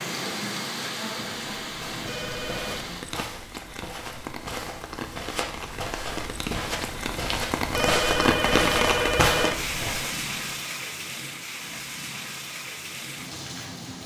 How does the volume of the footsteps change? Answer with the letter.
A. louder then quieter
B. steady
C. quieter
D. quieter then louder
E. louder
E.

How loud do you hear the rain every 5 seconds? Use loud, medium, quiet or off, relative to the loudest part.
medium, loud, medium.